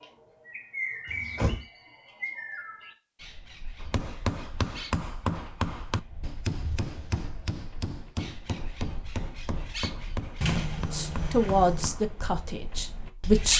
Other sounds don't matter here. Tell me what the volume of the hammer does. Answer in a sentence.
The volume of the hammer goes down.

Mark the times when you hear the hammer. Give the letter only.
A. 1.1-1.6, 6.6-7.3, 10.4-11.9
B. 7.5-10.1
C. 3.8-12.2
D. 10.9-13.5
C.